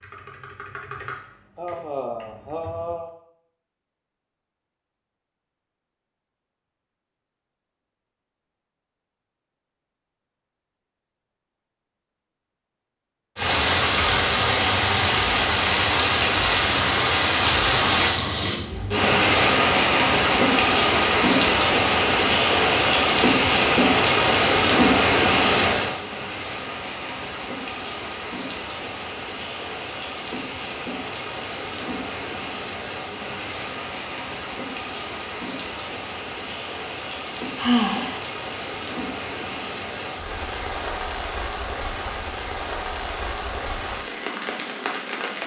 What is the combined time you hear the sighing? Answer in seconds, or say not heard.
2 s.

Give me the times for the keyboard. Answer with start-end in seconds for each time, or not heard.
0.0-3.0.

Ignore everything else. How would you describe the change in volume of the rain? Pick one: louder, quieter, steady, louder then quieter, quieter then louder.
quieter.